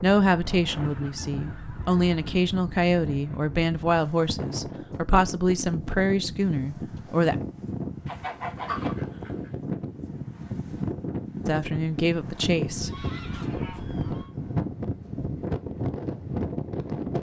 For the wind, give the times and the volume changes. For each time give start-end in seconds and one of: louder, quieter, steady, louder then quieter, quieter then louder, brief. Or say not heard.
0.0-17.1 louder.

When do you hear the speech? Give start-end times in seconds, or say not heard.
0.0-7.3, 11.4-13.1.